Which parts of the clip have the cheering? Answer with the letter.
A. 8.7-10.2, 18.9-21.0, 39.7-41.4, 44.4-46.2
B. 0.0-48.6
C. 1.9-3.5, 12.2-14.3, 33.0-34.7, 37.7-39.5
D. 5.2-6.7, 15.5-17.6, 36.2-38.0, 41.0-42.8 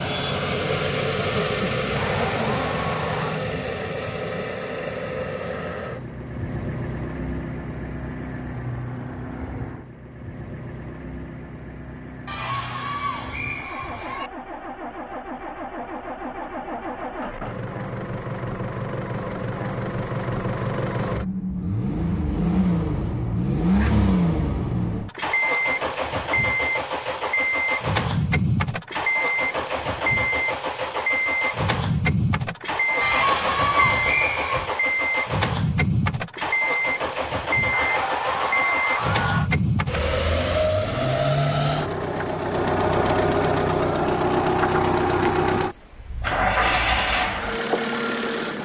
C.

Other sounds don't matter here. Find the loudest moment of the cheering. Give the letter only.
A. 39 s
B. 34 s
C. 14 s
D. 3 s
B.